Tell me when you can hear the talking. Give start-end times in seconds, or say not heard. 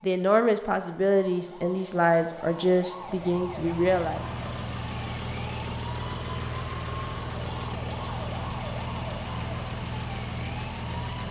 0.0-4.2.